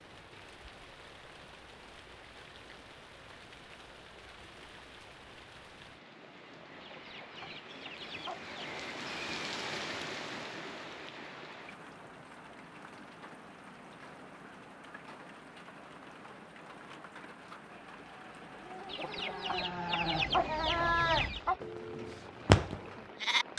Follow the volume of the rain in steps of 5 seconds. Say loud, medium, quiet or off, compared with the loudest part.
medium, loud, loud, medium, medium.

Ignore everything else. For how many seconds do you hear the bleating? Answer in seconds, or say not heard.
6 s.